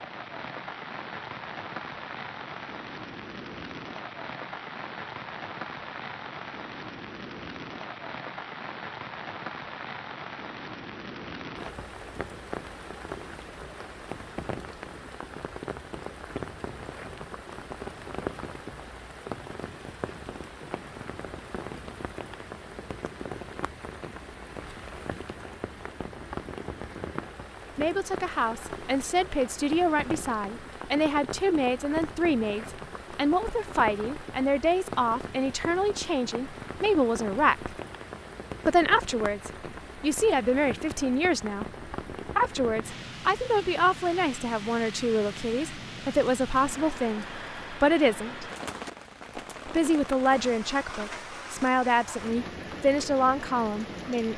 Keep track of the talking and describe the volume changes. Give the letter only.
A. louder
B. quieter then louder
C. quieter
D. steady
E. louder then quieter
D.